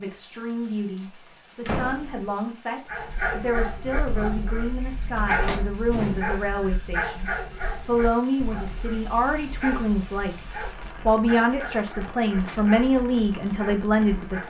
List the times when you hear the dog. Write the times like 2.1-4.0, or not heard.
2.9-14.4.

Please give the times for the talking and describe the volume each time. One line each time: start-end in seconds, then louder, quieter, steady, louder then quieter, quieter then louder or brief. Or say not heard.
0.0-14.4 louder.